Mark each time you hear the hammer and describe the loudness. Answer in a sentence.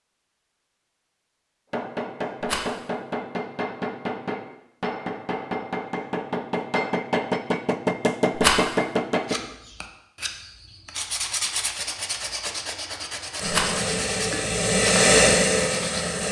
The hammer can be heard from 1.7 to 9.3 s, getting louder.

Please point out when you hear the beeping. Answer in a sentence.
You can't hear the beeping here.